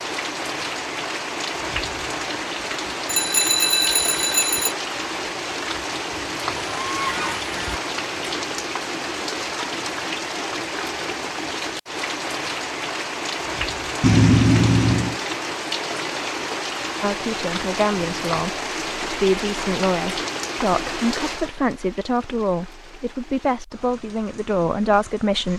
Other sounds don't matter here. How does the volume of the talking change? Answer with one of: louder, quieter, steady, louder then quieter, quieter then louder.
steady.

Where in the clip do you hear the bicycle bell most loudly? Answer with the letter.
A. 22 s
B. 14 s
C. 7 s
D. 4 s
B.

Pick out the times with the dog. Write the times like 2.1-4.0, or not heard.
not heard.